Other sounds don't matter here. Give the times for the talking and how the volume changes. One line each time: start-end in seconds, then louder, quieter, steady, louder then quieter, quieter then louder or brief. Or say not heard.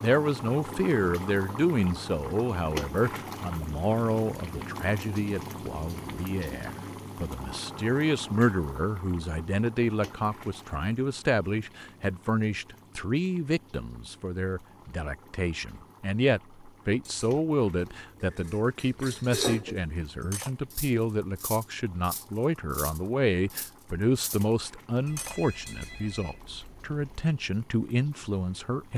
0.0-28.9 steady.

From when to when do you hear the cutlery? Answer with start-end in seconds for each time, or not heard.
17.1-24.4, 25.1-26.0.